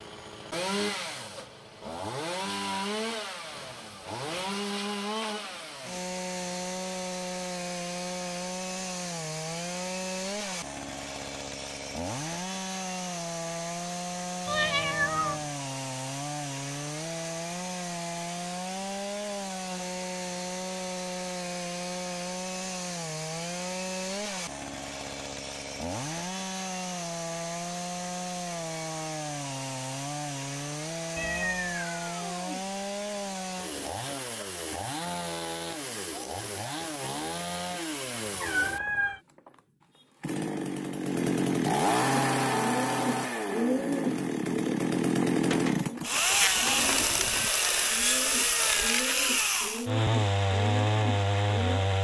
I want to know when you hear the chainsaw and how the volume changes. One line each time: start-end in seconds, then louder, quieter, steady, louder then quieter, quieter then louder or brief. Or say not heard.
0.0-51.9 louder.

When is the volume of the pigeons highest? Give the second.
44 s.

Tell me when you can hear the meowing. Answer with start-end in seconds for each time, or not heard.
14.4-15.4, 31.1-32.6, 38.4-39.2.